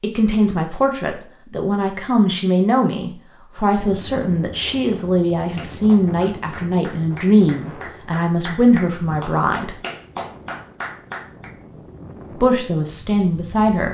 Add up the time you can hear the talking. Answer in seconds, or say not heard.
11 s.